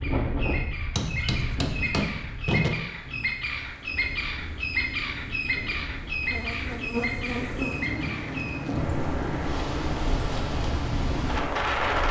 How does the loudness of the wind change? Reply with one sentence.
The volume of the wind goes down, then up.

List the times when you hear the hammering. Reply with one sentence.
The hammering can be heard from 0.9 to 2.7 s.